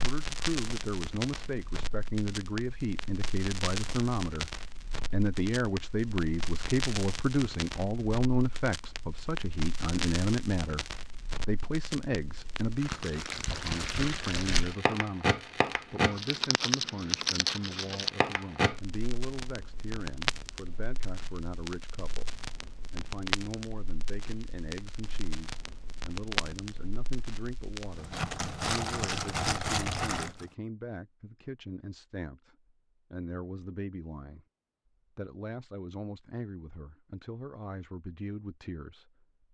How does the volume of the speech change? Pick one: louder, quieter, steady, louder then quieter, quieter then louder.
quieter.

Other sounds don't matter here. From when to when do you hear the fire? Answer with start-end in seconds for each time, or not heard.
0.0-30.4.